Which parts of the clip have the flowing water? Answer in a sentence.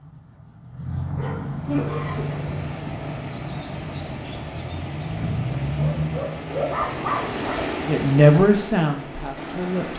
The flowing water can be heard from 1.6 to 9.9 s.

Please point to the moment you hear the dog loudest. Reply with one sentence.
The loudest moment of the dog is at 7 seconds.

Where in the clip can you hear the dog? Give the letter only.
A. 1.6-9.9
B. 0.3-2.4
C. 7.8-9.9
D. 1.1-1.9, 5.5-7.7
D.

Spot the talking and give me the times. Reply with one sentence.
You can hear the talking from 7.8 to 9.9 s.